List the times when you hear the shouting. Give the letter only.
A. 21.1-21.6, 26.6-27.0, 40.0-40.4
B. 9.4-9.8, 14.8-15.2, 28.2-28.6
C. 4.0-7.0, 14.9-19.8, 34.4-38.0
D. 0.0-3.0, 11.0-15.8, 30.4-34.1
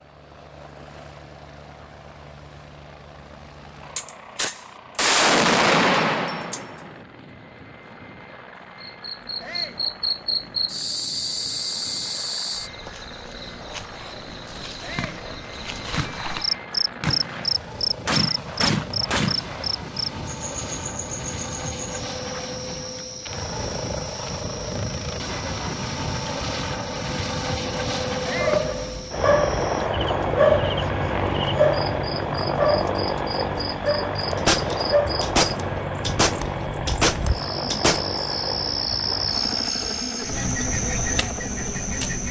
B.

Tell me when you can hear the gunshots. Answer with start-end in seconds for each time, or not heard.
4.0-7.0, 14.9-19.8, 34.4-38.0.